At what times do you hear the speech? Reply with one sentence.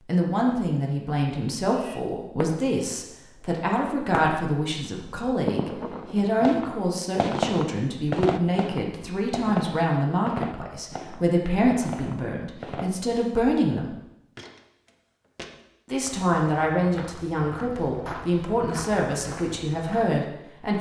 You can hear the speech from 0.1 to 13.9 s and from 15.9 to 20.7 s.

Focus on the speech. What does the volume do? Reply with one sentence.
The volume of the speech stays about the same.